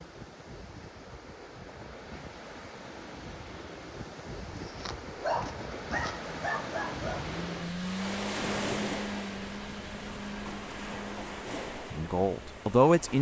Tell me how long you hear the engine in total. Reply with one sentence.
The engine can be heard for 5 seconds in total.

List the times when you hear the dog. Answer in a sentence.
You can hear the dog from 4.5 to 7.3 s.